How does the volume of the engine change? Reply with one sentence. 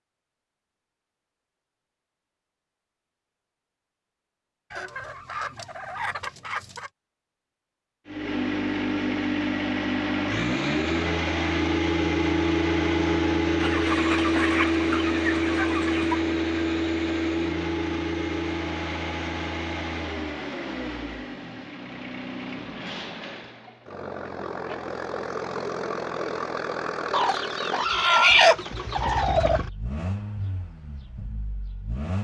The volume of the engine goes down.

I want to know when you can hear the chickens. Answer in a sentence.
You can hear the chickens from 4.7 to 6.9 s, from 13.6 to 16.2 s and from 27.1 to 29.6 s.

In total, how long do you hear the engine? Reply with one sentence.
The engine can be heard for 24 seconds in total.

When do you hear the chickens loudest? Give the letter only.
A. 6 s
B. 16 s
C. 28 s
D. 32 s
C.